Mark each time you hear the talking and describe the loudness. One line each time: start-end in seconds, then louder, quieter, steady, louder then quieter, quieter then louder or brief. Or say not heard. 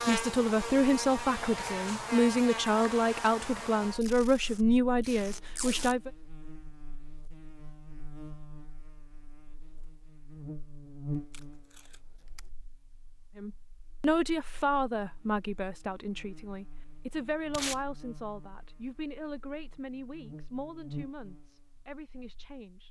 0.1-6.1 steady
13.3-22.8 quieter.